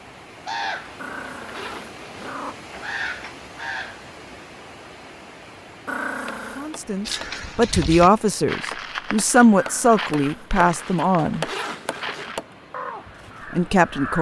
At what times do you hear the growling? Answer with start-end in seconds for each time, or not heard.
0.9-2.5, 5.8-6.7, 9.6-10.6.